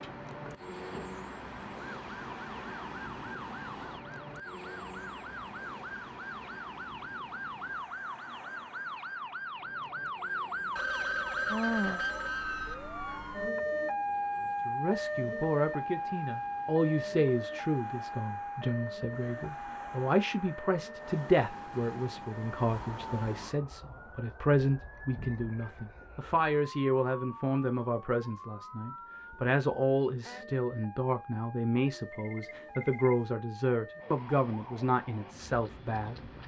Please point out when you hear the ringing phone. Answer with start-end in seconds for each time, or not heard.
10.8-12.8, 32.1-33.2.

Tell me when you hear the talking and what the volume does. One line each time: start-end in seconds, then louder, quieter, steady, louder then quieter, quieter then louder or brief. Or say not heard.
14.7-36.3 steady.